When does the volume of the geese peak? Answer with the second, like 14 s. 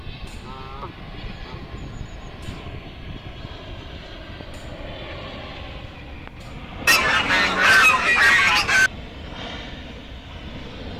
8 s.